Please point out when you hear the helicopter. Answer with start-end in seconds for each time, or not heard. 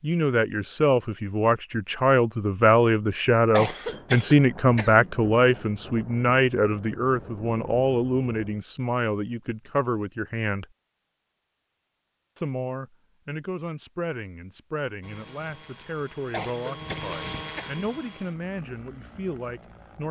15.0-20.0.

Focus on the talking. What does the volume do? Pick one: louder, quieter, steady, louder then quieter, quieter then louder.
quieter.